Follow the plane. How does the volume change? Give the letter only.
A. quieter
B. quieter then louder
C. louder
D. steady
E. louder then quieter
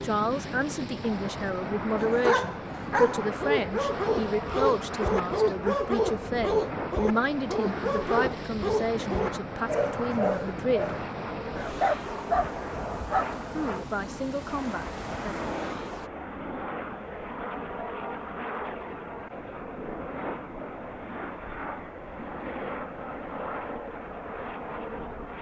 D.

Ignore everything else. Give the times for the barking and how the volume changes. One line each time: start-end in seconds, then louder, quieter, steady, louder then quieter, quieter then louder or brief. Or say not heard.
1.9-13.2 steady.